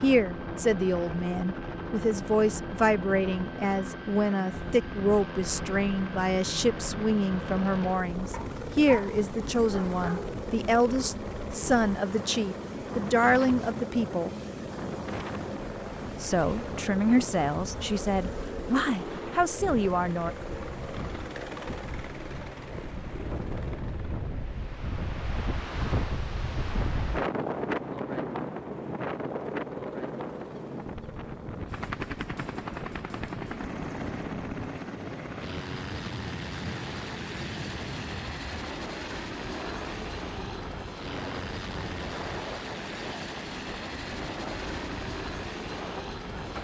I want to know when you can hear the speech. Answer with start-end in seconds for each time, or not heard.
0.0-14.3, 16.2-20.3.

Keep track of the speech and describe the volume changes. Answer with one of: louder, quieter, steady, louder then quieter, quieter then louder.
steady.